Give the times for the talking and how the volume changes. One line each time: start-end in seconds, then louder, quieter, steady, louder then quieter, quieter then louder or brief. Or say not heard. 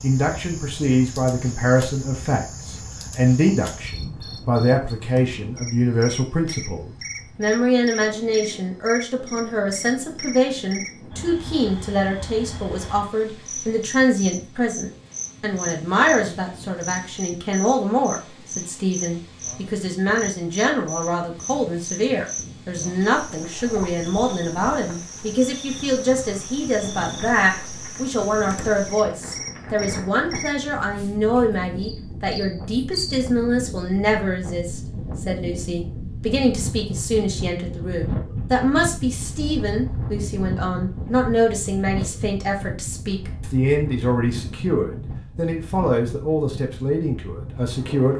0.0-48.1 steady.